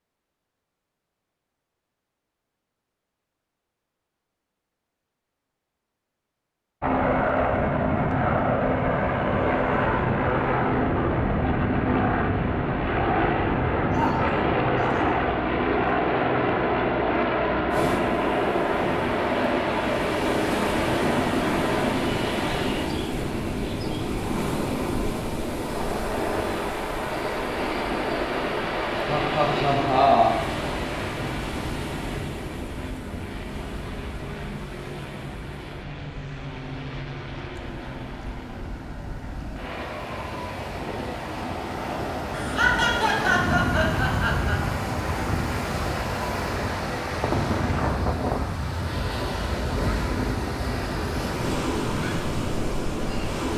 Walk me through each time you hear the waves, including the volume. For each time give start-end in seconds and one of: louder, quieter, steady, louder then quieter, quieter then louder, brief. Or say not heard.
17.7-53.5 quieter then louder.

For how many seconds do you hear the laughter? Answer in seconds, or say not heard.
5 s.